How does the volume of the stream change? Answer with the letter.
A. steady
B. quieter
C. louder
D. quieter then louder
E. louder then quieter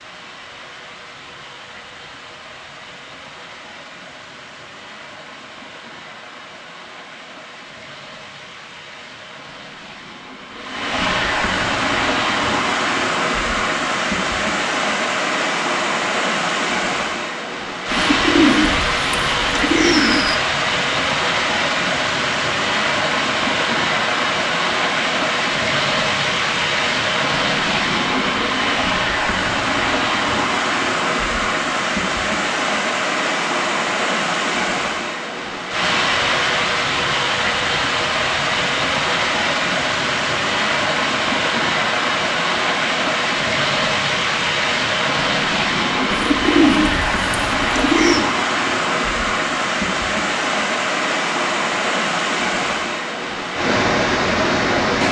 C.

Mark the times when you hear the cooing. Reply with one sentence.
The cooing can be heard from 17.9 to 20.4 s and from 46.1 to 48.2 s.